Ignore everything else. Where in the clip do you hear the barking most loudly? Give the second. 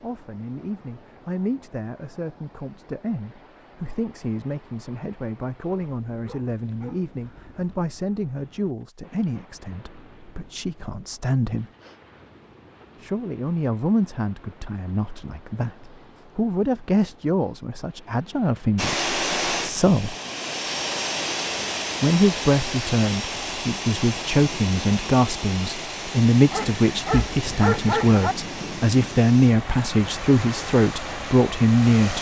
28 s.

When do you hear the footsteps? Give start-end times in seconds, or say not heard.
not heard.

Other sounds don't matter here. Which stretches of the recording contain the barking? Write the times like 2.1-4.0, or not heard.
5.7-7.8, 26.5-28.4.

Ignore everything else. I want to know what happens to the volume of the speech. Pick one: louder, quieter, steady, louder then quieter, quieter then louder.
louder.